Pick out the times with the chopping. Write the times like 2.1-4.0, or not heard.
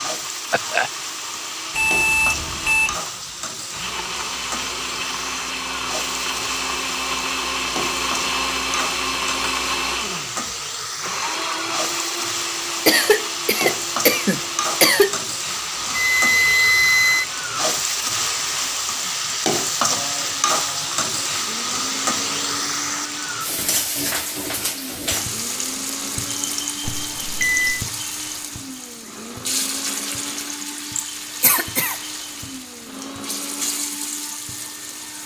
not heard.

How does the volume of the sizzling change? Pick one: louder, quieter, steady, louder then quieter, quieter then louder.
louder then quieter.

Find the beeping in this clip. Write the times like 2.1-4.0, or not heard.
1.8-3.0, 15.9-17.2, 26.9-27.9.